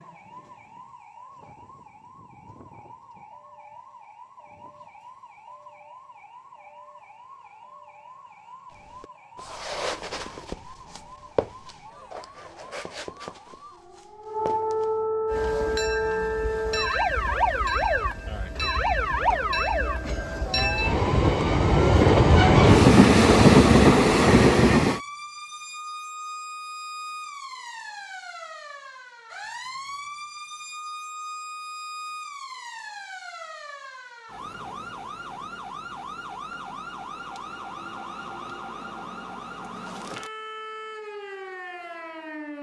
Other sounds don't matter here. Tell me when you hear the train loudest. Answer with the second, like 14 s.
23 s.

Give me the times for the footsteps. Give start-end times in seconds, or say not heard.
8.7-14.9.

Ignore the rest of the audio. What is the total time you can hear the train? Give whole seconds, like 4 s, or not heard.
10 s.